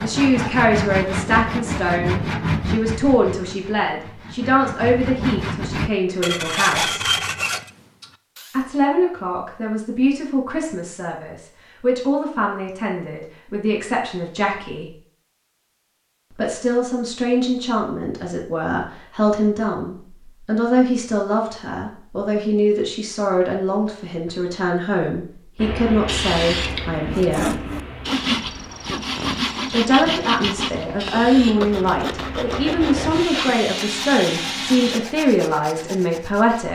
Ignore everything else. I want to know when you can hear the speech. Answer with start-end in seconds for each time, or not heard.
0.0-7.1, 8.5-14.9, 16.3-27.6, 29.6-36.7.